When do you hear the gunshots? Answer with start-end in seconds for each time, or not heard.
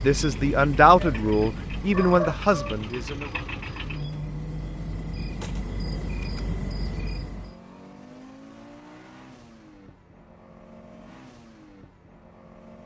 5.4-6.4.